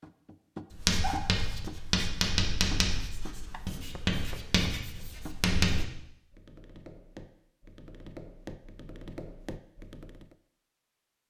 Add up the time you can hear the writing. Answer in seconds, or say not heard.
5 s.